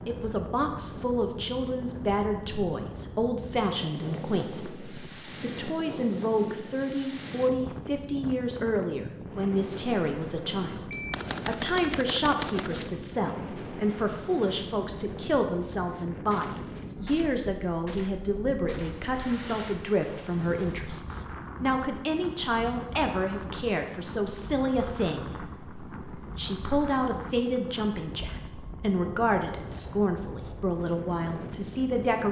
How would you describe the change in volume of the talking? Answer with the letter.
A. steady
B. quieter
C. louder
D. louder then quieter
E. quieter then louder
A.